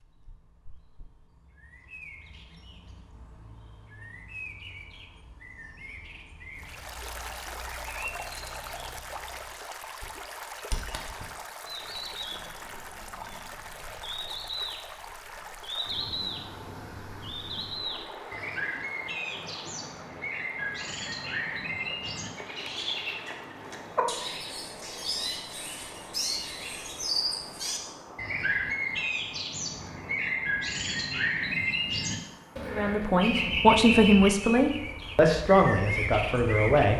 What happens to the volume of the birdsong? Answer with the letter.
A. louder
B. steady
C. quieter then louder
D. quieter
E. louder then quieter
A.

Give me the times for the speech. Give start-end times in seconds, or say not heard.
32.6-36.9.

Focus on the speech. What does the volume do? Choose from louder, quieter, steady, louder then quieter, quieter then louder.
quieter.